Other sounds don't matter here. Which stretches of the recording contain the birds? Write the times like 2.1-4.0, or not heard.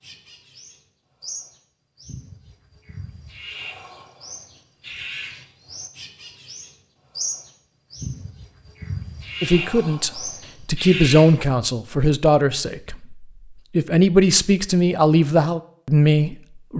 0.0-11.3.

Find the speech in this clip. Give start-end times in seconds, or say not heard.
9.4-16.7.